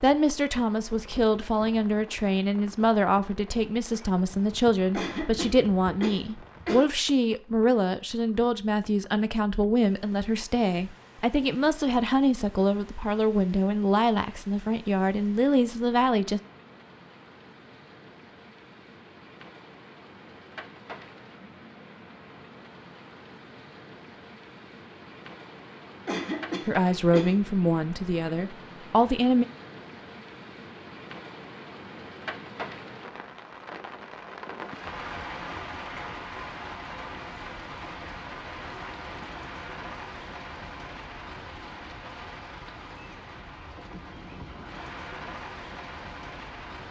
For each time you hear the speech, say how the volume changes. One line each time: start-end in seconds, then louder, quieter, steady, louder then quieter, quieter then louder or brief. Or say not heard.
0.0-16.4 steady
26.6-29.4 brief.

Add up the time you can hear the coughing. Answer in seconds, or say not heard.
3 s.